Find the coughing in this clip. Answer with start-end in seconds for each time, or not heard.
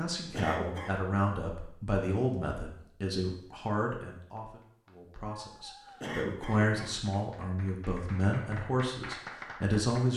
0.3-0.9, 6.0-7.0.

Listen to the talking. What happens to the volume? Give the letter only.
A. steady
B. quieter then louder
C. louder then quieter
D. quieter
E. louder
B.